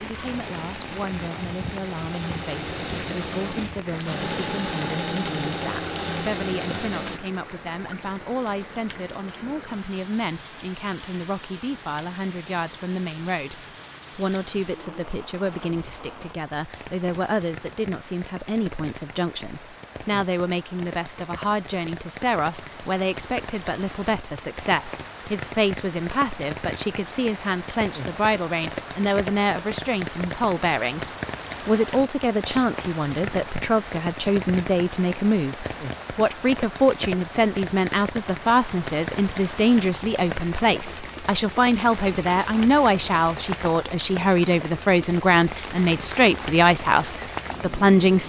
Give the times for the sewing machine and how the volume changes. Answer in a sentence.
The sewing machine can be heard from 0.2 to 7.2 s, getting louder.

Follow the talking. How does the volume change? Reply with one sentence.
The loudness of the talking goes up.